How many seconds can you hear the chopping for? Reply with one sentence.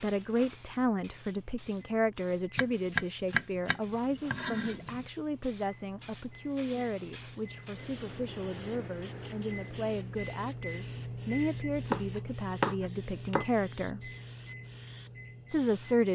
The chopping can be heard for 4 seconds in total.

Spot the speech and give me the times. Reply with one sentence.
You can hear the speech from 0.0 to 14.1 s and from 15.5 to 16.0 s.